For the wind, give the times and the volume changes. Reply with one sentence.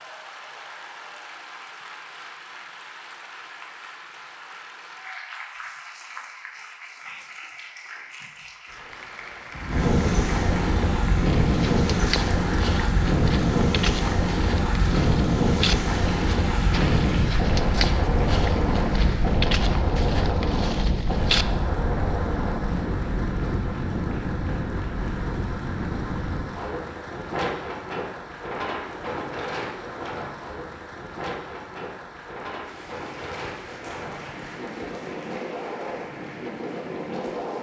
You can hear the wind from 9.5 to 37.5 s, getting quieter.